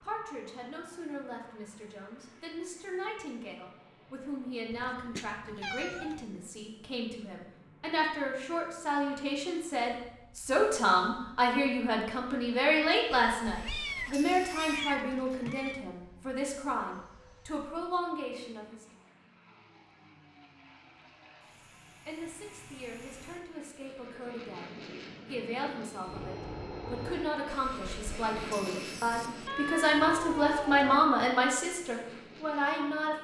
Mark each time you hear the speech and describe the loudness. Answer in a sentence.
The speech can be heard from 0.0 to 18.9 s, getting louder then quieter; and from 22.1 to 33.1 s, getting louder.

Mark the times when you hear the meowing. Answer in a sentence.
The meowing can be heard from 4.7 to 6.2 s, from 13.6 to 15.8 s and from 29.4 to 31.1 s.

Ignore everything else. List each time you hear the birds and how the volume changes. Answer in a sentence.
The birds can't be heard in this clip.